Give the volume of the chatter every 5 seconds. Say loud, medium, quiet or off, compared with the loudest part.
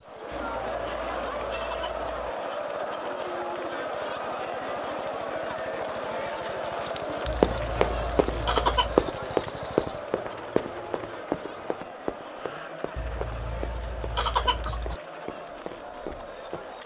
loud, loud, medium, medium.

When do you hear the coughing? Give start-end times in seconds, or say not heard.
0.3-2.3, 7.2-9.1, 12.9-14.9.